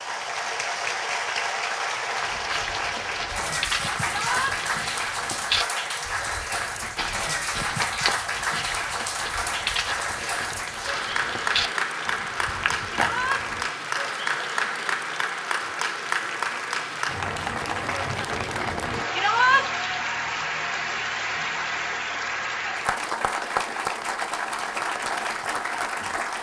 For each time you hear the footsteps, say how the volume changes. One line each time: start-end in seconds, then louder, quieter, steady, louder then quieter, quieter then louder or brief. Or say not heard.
2.2-13.7 steady.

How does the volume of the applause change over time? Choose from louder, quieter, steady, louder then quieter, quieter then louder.
steady.